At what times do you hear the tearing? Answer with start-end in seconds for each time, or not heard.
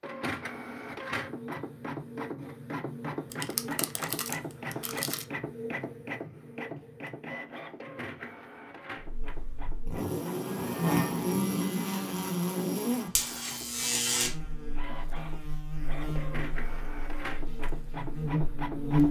3.3-5.2.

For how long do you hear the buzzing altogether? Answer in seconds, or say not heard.
10 s.